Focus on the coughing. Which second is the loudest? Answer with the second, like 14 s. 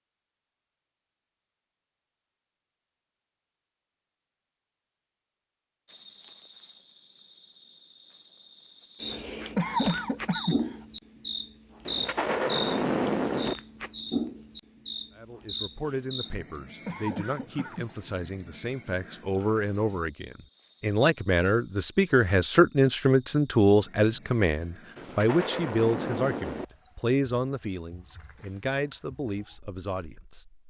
10 s.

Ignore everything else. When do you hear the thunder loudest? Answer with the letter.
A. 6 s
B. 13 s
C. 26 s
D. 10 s
B.